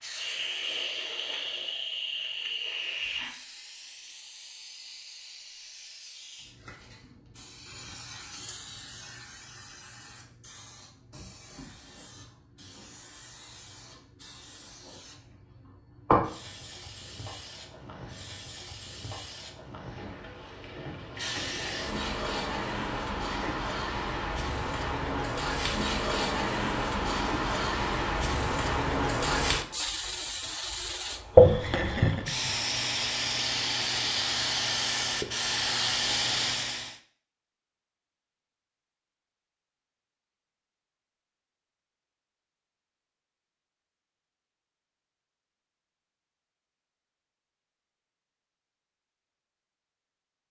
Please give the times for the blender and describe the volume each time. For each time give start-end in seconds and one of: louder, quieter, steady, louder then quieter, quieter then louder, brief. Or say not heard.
not heard.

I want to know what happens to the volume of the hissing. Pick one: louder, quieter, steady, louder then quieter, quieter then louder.
quieter then louder.